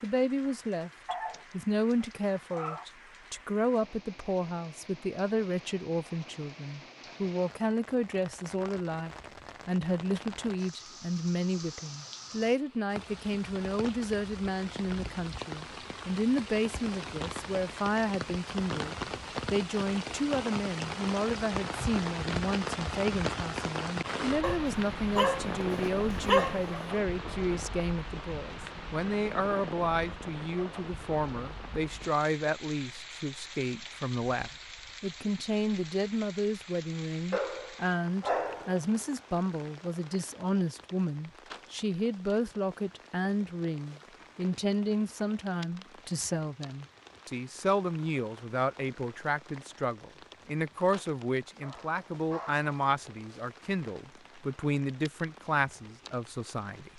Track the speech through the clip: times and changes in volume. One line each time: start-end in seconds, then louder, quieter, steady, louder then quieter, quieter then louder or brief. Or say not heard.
0.0-56.9 steady.